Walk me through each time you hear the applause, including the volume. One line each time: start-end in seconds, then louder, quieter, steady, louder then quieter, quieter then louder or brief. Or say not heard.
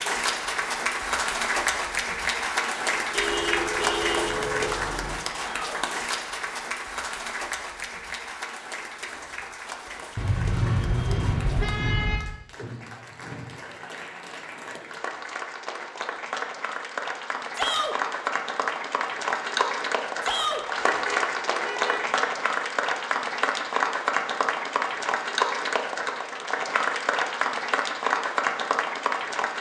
0.0-29.5 quieter then louder.